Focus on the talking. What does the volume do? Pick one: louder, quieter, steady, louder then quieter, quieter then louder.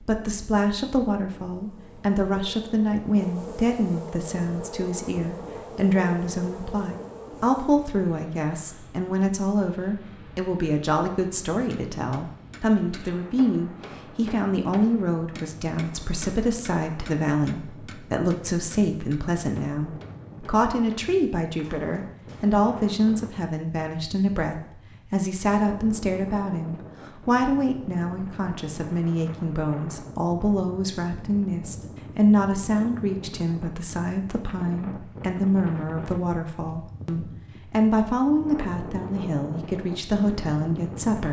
steady.